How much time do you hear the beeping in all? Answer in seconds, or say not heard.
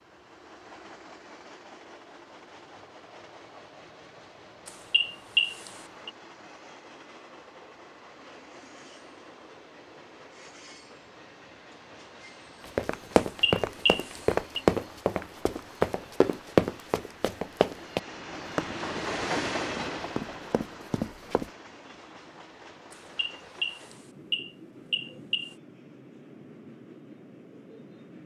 5 s.